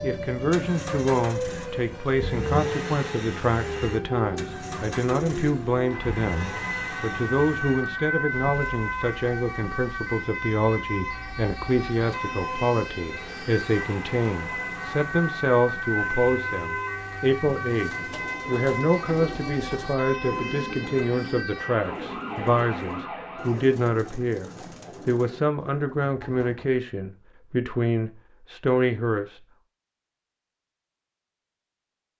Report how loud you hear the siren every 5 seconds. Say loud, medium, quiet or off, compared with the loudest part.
loud, loud, loud, loud, loud, off, off.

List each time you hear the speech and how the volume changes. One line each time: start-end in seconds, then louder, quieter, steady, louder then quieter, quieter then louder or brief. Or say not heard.
0.0-29.2 steady.